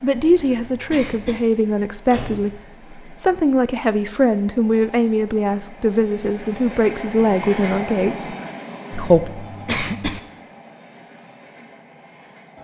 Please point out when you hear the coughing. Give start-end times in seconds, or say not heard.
0.2-1.4, 8.9-10.2.